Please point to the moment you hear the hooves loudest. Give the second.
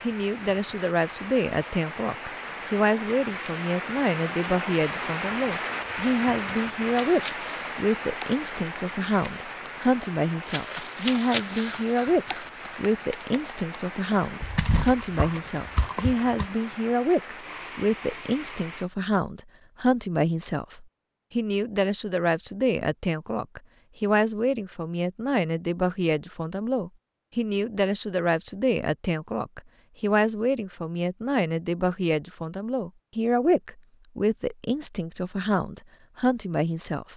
11 s.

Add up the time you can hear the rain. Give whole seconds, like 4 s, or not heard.
19 s.